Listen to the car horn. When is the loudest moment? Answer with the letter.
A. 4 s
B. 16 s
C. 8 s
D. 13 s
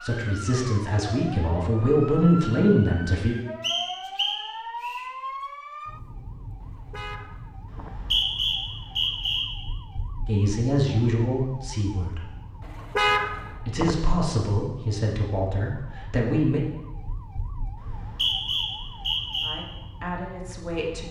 D.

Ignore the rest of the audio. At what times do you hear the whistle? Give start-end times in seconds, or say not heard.
3.6-5.0, 7.7-9.4, 17.8-19.6.